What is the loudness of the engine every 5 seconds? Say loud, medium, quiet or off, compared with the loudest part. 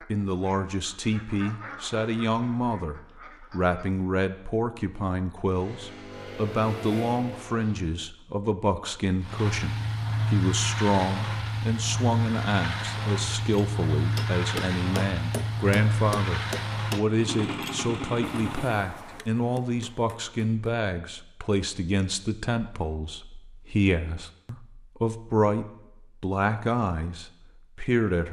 off, medium, loud, loud, off, off.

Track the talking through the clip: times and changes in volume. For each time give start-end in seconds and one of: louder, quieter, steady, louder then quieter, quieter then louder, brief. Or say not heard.
0.1-28.2 steady.